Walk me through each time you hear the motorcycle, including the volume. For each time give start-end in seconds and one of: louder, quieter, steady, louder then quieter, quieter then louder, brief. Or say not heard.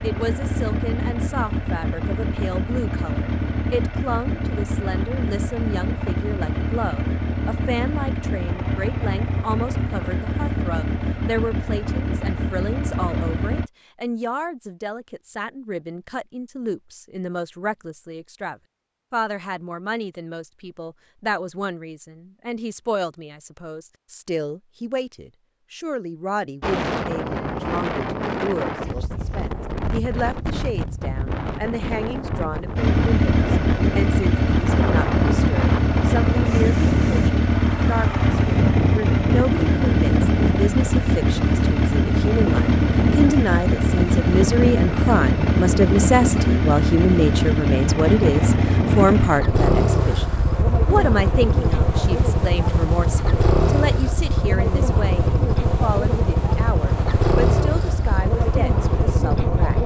0.0-13.7 steady
32.8-59.8 steady.